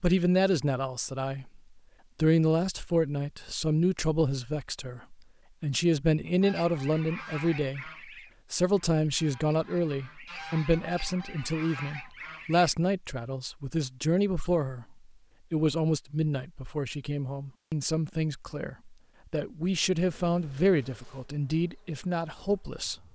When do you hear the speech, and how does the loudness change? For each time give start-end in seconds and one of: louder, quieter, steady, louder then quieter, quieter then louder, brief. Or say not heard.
0.0-22.9 steady.